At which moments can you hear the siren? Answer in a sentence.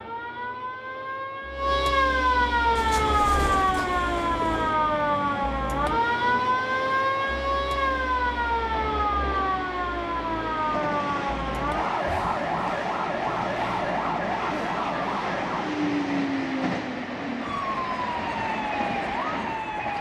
The siren can be heard from 0.0 to 19.9 s.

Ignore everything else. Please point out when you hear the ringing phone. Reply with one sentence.
The ringing phone can't be heard in this clip.